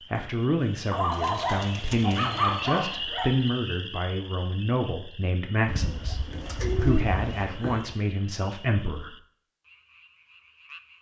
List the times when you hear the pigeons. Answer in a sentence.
You can hear the pigeons from 1.1 to 3.0 s and from 5.7 to 7.6 s.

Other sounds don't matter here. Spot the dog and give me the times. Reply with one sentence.
The dog can be heard from 0.9 to 3.4 s and from 6.3 to 7.9 s.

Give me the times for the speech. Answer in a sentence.
The speech can be heard from 0.1 to 9.2 s.